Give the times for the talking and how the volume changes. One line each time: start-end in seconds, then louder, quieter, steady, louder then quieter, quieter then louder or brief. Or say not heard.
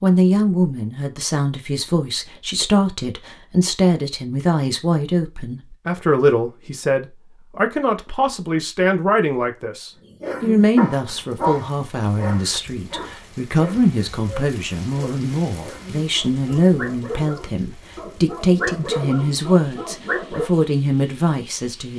0.0-21.9 steady.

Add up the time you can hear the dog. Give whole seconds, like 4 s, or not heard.
10 s.